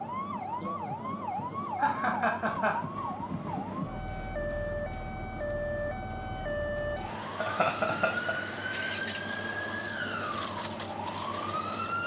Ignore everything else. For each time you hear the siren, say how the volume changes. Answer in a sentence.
You can hear the siren from 0.0 to 12.0 s, at a steady volume.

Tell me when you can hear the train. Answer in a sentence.
You can hear the train from 0.0 to 12.0 s.